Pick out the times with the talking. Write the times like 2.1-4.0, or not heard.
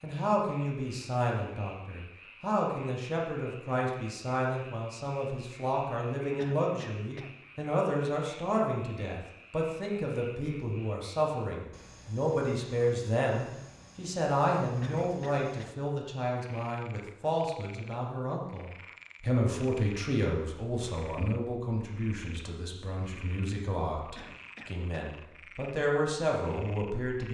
0.0-27.3.